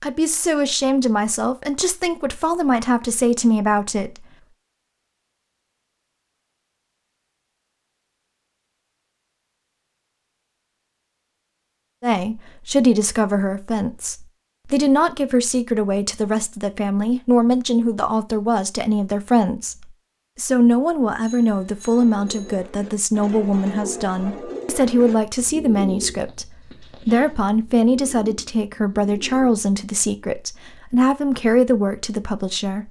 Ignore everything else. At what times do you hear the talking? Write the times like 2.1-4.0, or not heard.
0.0-4.2, 12.0-32.8.